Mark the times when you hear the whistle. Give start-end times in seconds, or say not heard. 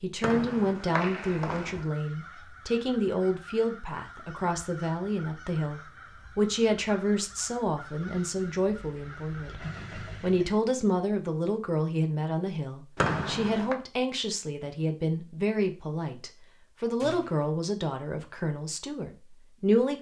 0.2-1.9, 12.9-13.8.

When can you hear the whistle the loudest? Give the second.
13 s.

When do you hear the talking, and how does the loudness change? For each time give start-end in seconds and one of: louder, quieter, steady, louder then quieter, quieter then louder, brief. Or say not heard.
0.0-19.9 steady.